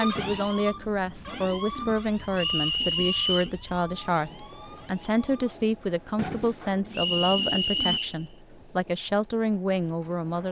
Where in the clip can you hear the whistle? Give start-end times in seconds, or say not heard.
2.4-3.5, 6.9-8.2.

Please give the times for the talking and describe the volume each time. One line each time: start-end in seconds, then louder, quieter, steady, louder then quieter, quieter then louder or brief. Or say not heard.
0.0-10.4 steady.